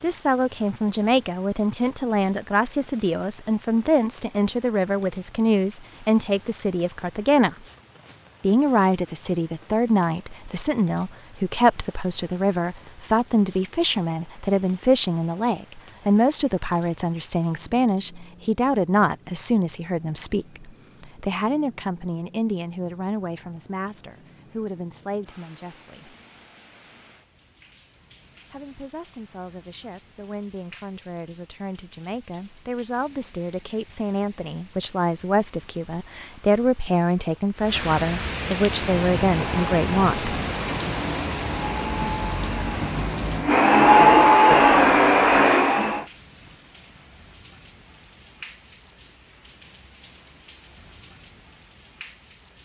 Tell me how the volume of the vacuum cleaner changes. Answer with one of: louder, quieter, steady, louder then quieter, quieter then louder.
louder.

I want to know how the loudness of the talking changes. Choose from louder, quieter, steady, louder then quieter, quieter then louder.
quieter then louder.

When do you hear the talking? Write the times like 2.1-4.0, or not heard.
0.0-7.5, 8.4-26.1, 28.5-40.4.